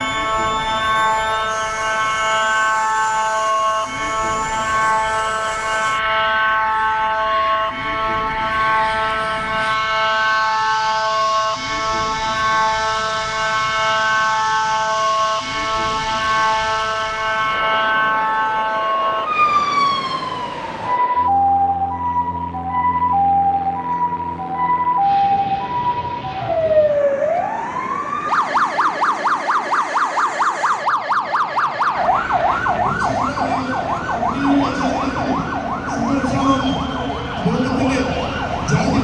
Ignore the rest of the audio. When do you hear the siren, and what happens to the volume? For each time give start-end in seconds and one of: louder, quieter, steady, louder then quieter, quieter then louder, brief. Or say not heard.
0.0-39.0 steady.